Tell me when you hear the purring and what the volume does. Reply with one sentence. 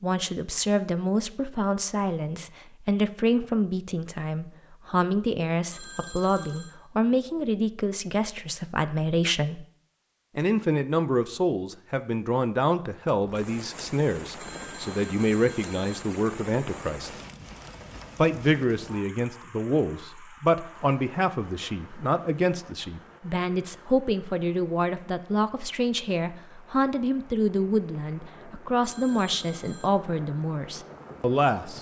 You can't hear the purring here.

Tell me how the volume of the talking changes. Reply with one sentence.
The volume of the talking stays about the same.